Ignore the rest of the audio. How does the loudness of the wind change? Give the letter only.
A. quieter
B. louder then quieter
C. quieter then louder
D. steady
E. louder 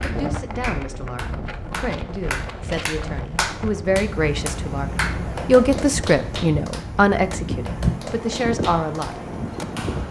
E.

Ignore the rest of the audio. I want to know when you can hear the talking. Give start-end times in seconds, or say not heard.
0.0-9.2.